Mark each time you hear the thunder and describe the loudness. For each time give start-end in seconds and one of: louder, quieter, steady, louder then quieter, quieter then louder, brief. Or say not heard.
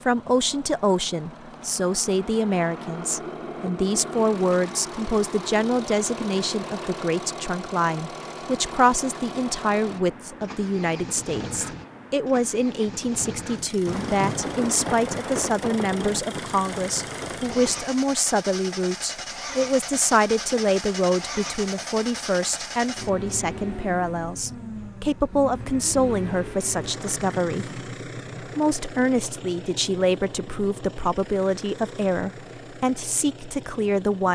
13.8-17.9 quieter.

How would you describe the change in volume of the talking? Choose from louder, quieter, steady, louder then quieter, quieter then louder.
steady.